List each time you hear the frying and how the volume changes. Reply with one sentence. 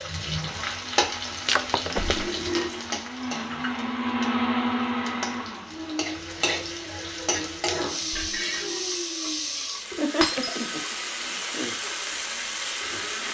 The frying can be heard from 0.0 to 13.3 s, getting quieter then louder.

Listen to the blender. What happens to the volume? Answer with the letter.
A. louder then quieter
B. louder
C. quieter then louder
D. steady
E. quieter
A.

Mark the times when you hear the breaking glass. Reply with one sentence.
You can hear the breaking glass from 1.4 to 2.2 s and from 10.2 to 10.7 s.